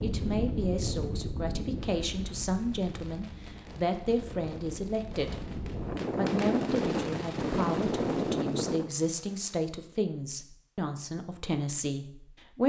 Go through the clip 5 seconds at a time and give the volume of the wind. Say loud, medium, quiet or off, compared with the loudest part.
medium, loud, off.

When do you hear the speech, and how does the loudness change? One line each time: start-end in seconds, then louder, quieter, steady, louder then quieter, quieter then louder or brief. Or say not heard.
0.0-12.6 steady.